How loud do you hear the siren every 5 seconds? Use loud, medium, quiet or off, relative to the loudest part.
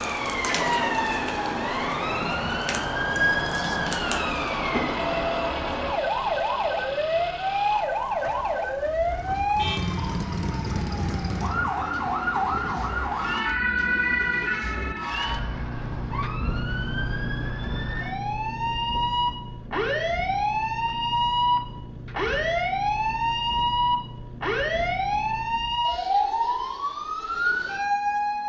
loud, loud, loud, medium, loud, loud.